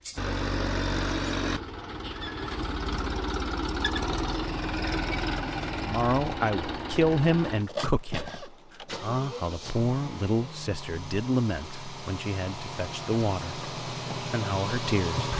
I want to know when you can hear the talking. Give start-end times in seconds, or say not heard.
5.8-15.3.